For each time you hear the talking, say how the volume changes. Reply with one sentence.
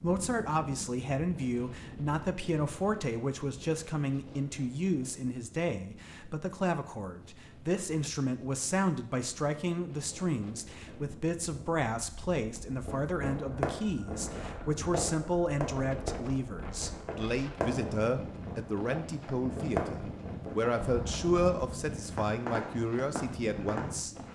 You can hear the talking from 0.0 to 24.1 s, at a steady volume.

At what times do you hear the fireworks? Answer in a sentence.
The fireworks can be heard from 12.7 to 23.9 s.